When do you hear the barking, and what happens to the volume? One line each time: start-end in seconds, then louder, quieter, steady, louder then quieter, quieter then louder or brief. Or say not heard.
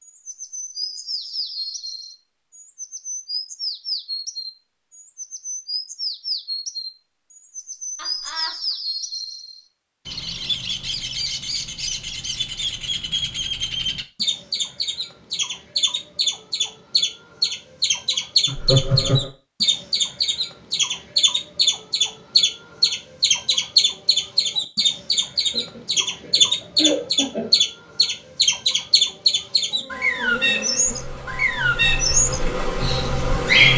not heard.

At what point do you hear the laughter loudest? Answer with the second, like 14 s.
19 s.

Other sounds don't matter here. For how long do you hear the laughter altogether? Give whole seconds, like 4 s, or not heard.
4 s.